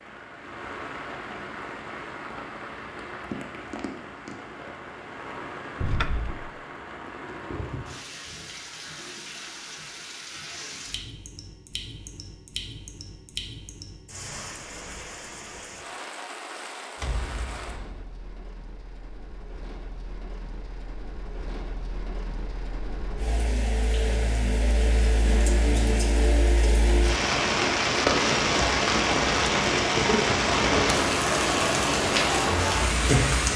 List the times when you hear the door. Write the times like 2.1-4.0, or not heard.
5.8-6.5, 16.9-17.9.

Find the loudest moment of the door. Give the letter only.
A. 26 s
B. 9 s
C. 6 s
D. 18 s
C.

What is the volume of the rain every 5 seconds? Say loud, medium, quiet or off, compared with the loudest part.
quiet, quiet, quiet, quiet, quiet, loud, loud.